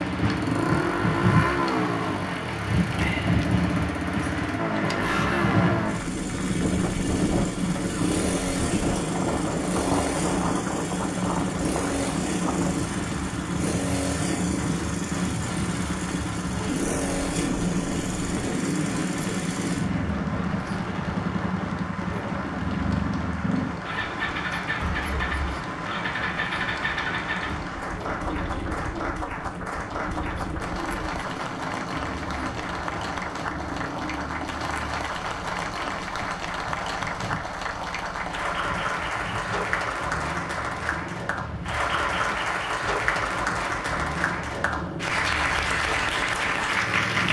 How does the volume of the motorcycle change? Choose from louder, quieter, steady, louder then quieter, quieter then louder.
quieter.